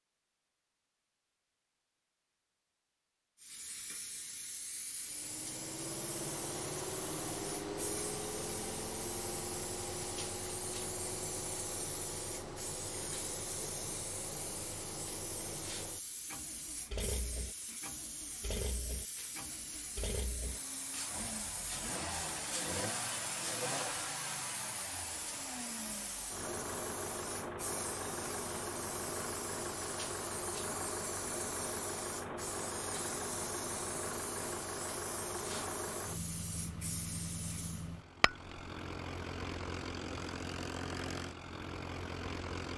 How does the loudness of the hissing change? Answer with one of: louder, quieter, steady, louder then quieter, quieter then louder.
steady.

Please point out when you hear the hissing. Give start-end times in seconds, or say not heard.
3.4-37.9.